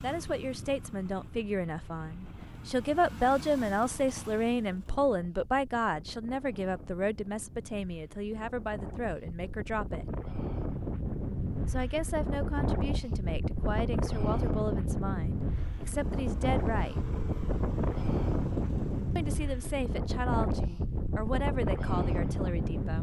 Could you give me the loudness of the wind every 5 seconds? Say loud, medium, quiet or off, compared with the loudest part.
quiet, quiet, loud, loud, loud.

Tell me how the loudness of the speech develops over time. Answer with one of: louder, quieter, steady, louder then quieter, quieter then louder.
quieter.